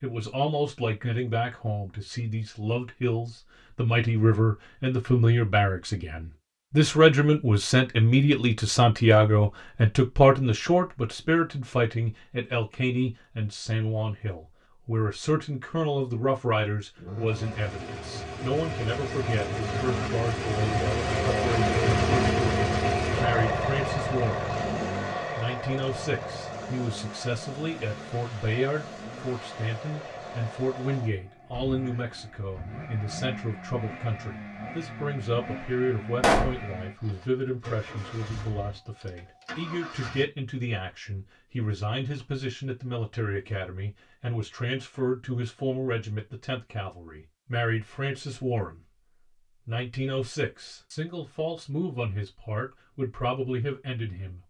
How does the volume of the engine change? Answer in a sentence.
The volume of the engine goes down.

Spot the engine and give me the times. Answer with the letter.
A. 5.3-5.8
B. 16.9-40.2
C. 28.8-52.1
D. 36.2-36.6
B.